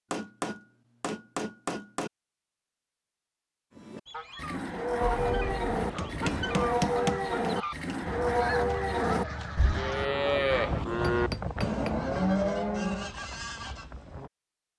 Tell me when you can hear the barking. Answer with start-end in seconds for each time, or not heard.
not heard.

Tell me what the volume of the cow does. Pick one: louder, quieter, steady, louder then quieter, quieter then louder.
steady.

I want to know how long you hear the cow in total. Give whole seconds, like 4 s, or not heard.
9 s.